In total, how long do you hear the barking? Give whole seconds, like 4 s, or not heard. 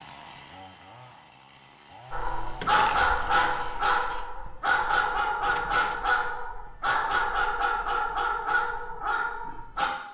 8 s.